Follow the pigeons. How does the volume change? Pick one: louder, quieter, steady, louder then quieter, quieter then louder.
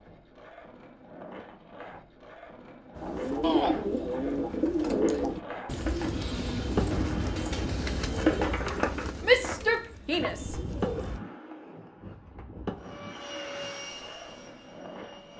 quieter.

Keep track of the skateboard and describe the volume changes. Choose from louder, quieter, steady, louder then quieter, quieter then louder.
louder then quieter.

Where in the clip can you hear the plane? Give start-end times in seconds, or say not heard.
12.8-15.3.